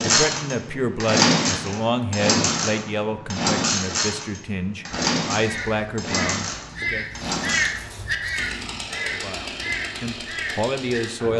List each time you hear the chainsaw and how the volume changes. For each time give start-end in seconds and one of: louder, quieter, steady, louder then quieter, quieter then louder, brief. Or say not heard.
0.0-11.3 quieter.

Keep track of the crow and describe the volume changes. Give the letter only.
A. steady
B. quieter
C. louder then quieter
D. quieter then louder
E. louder
C.